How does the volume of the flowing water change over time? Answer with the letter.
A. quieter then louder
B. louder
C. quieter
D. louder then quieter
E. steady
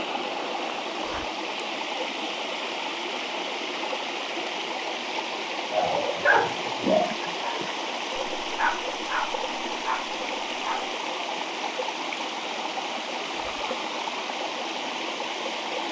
E.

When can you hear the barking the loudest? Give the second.
6 s.